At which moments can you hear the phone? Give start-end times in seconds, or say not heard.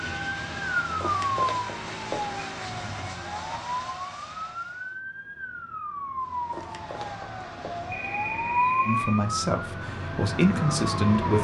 0.9-2.5, 6.5-9.2.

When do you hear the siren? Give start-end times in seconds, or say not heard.
0.0-11.3.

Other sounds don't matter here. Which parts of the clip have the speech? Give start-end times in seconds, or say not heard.
8.8-11.3.